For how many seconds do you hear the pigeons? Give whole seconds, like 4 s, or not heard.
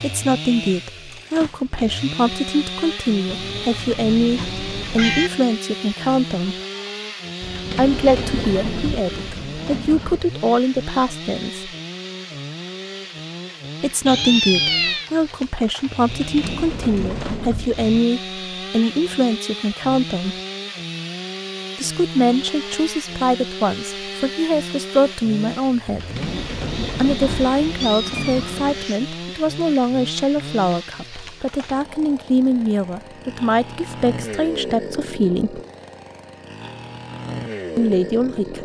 8 s.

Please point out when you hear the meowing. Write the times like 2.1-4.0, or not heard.
3.2-5.3, 14.1-15.1, 27.2-29.0.